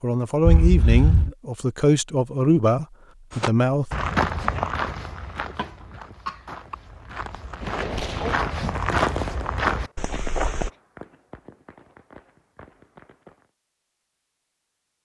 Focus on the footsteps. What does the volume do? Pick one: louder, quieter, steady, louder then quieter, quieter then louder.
quieter then louder.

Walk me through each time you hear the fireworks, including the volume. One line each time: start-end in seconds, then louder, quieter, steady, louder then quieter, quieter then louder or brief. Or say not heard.
7.6-13.5 quieter.